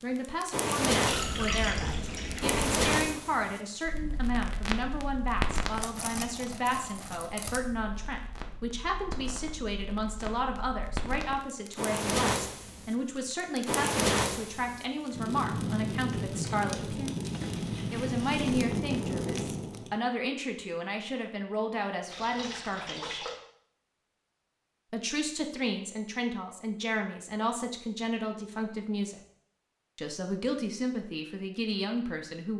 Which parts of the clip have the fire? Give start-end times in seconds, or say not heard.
0.1-19.9.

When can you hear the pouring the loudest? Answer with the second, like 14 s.
2 s.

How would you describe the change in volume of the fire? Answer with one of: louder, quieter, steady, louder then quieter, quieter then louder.
quieter then louder.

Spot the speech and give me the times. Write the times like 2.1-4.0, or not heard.
0.0-17.1, 17.9-23.2, 24.9-29.2, 29.9-32.5.